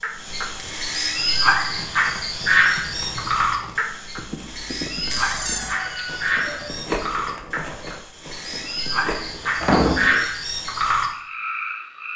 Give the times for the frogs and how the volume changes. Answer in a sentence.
The frogs can be heard from 0.0 to 12.1 s, getting quieter then louder.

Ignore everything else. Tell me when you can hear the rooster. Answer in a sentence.
The rooster can be heard from 5.3 to 6.8 s.